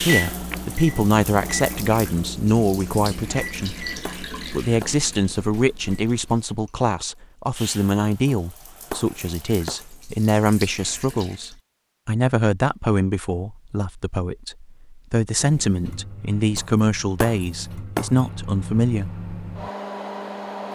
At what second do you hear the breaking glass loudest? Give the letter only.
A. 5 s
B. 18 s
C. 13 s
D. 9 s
B.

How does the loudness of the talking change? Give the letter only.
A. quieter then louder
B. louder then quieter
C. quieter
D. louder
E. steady
E.